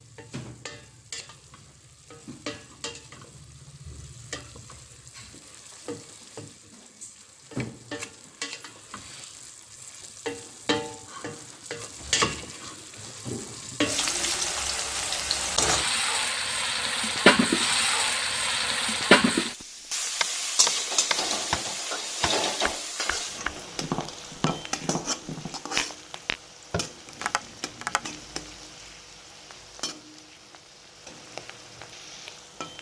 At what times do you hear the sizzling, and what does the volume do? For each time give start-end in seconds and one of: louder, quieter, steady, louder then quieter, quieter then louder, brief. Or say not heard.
0.0-32.7 louder then quieter.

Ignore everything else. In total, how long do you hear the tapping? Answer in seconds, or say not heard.
8 s.